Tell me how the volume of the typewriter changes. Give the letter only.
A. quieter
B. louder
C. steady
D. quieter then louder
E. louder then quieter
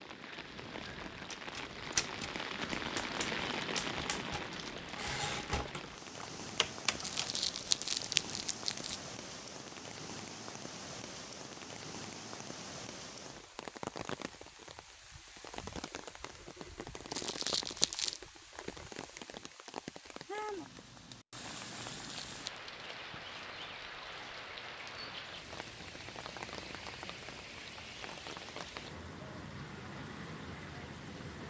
D.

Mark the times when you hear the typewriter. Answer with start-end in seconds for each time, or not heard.
1.3-7.3.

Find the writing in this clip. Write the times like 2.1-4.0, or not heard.
not heard.